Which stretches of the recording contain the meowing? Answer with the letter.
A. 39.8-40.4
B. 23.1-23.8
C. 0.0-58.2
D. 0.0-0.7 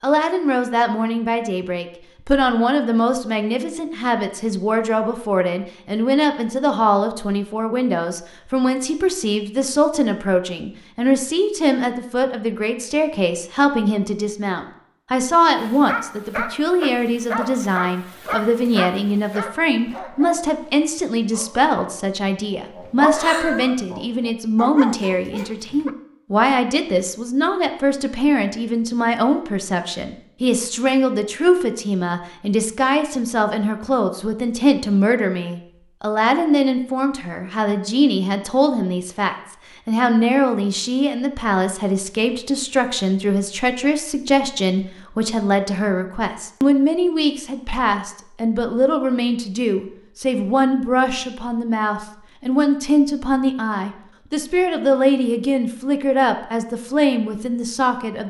B.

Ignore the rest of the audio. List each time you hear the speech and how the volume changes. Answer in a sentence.
The speech can be heard from 0.0 to 58.2 s, at a steady volume.